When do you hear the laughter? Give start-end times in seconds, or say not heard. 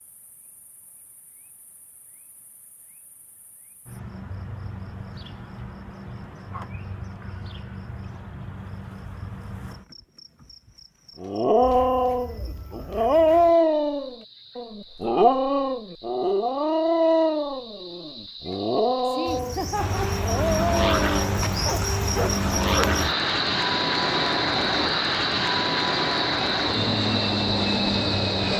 19.1-20.1.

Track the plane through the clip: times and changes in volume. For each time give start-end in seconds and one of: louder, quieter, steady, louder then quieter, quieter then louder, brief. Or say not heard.
19.8-28.5 steady.